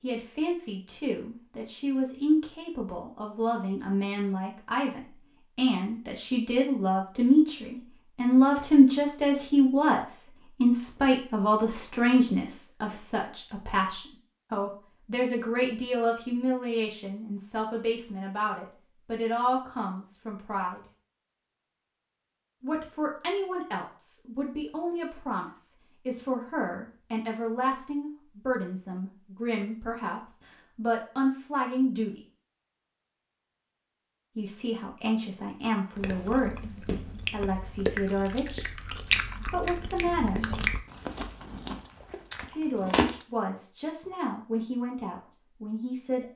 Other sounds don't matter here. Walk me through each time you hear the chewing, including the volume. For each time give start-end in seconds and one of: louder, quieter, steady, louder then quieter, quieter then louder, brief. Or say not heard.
36.0-43.2 louder then quieter.